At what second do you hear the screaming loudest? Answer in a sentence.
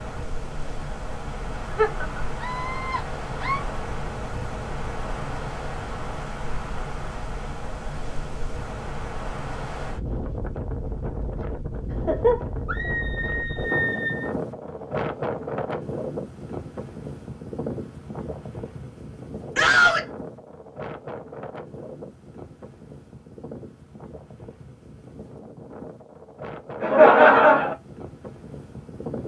The volume of the screaming peaks at 20 seconds.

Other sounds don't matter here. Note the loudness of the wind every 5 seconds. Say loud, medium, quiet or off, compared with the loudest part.
loud, loud, loud, loud, medium, medium.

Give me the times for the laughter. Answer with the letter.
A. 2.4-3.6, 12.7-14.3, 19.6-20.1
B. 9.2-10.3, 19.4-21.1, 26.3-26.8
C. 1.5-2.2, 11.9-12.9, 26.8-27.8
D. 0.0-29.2
C.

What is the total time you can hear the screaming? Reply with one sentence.
You can hear the screaming for 3 seconds altogether.